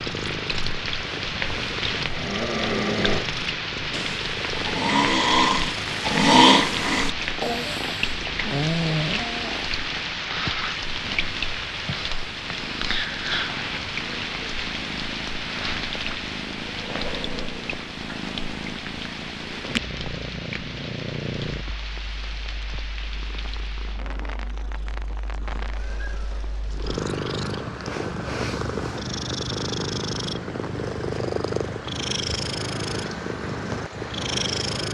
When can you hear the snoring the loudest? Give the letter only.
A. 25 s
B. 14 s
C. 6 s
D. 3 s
C.